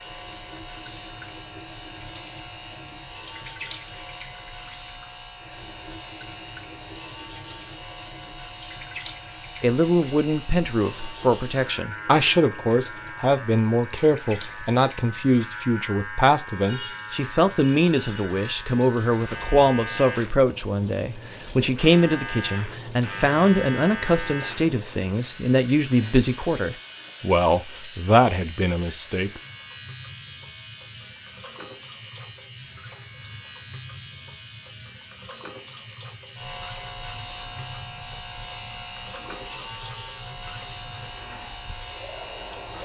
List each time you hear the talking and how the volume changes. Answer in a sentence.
You can hear the talking from 9.6 to 29.4 s, at a steady volume.